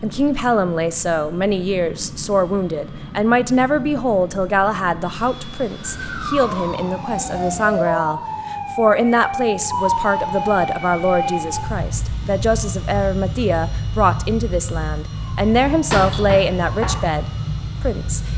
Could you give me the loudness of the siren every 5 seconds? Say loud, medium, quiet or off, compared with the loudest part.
off, loud, loud, loud.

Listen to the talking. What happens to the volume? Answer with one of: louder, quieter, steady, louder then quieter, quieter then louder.
steady.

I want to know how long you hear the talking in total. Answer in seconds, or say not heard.
18 s.